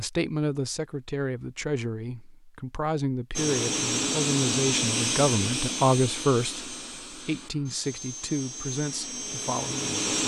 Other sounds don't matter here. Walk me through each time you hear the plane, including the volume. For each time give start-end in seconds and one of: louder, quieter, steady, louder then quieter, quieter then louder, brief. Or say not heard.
3.4-10.2 quieter then louder.